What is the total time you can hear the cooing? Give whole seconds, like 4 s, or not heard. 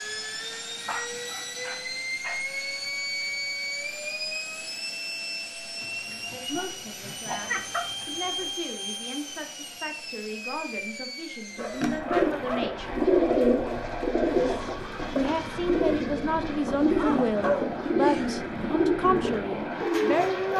9 s.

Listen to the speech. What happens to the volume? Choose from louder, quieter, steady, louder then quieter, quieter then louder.
louder.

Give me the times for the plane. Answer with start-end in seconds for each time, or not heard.
0.0-20.5.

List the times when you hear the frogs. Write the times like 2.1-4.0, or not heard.
not heard.